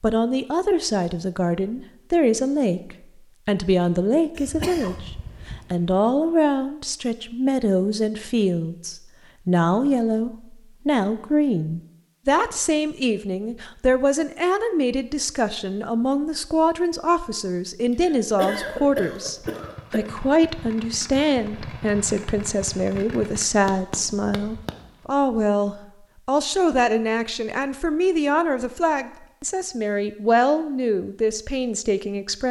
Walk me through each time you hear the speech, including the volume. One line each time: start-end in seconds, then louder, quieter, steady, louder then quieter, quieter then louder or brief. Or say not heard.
0.0-32.4 steady.